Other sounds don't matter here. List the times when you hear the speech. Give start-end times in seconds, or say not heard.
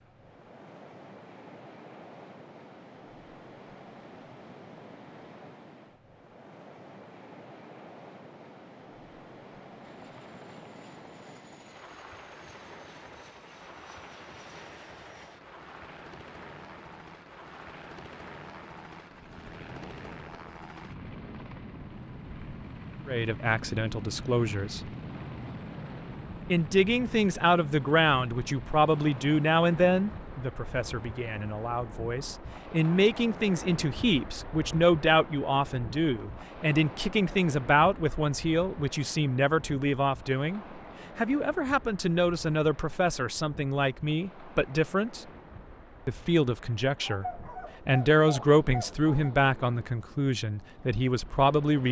23.1-24.8, 26.5-45.2, 46.0-51.8.